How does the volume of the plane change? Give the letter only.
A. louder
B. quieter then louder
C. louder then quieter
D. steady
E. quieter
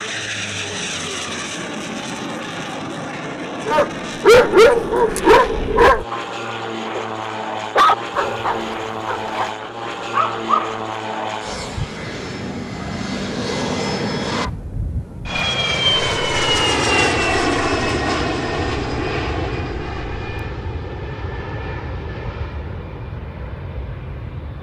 C.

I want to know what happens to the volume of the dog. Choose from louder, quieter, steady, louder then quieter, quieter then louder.
quieter.